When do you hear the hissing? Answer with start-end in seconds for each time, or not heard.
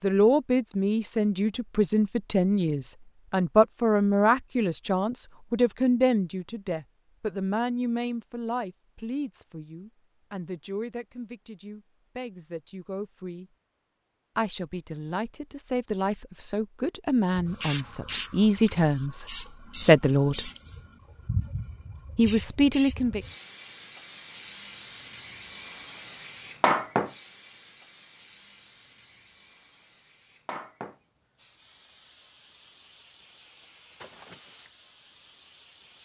17.4-36.0.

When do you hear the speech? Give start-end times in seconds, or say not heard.
0.0-13.4, 14.3-20.5, 22.1-23.2.